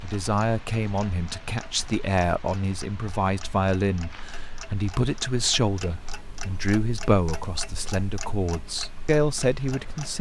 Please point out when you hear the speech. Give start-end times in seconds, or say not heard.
0.0-10.1.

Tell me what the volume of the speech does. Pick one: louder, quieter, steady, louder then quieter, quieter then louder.
steady.